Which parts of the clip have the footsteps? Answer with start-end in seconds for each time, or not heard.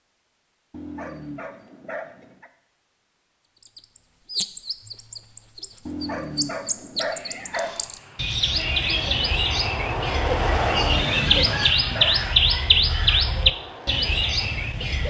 not heard.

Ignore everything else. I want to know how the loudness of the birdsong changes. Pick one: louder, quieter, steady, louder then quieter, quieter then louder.
louder.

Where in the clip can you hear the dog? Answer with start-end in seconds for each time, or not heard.
0.7-2.5, 5.8-7.7, 10.8-12.2.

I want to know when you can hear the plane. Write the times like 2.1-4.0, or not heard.
7.5-15.0.